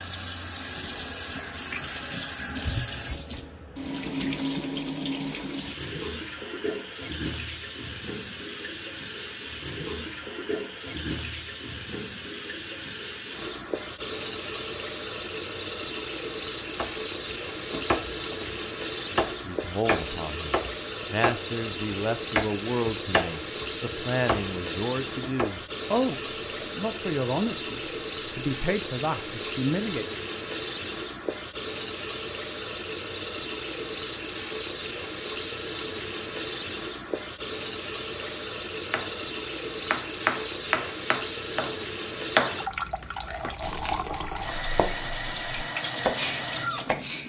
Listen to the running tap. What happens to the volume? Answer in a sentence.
The volume of the running tap stays about the same.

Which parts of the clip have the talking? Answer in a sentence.
The talking can be heard from 19.4 to 30.1 s.